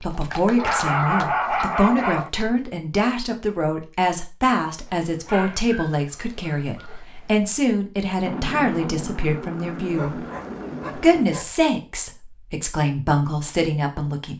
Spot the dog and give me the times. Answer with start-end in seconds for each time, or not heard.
0.6-2.3, 4.8-7.5, 9.9-11.6.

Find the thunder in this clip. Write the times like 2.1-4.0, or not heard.
8.2-11.2.